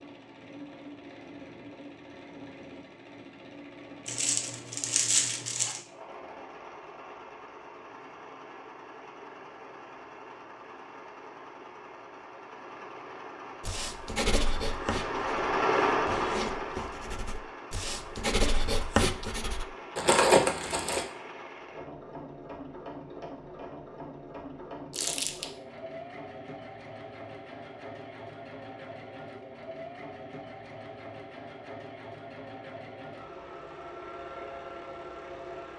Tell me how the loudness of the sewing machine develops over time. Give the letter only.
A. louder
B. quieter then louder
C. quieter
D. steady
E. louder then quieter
E.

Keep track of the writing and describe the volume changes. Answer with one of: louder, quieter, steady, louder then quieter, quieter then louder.
quieter then louder.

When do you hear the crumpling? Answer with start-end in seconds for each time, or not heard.
4.0-5.8, 19.9-21.1, 24.9-25.4.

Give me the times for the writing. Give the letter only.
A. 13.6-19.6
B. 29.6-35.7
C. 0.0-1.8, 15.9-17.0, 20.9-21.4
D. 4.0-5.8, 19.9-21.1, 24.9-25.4
A.